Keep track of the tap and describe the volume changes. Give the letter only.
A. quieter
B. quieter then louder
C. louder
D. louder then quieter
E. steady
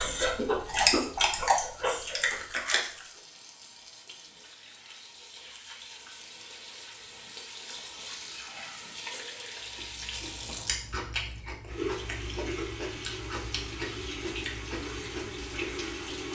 C.